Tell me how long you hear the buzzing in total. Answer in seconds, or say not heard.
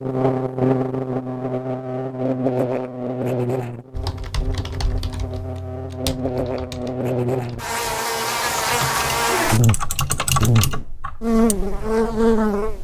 13 s.